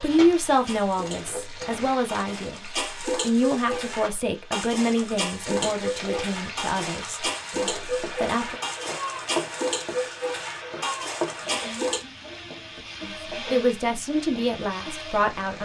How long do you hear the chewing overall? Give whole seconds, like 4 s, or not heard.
not heard.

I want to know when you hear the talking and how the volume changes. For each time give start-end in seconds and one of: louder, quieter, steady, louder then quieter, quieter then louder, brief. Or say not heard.
0.0-8.6 quieter
13.0-15.6 brief.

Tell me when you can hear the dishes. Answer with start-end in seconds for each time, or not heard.
0.5-12.1.